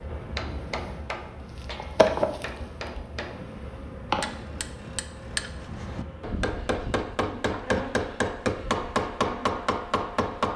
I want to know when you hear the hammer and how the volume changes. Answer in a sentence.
You can hear the hammer from 0.1 to 10.5 s, getting louder.